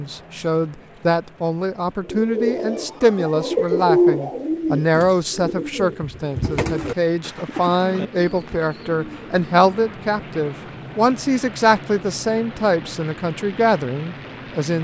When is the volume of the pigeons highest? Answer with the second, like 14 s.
4 s.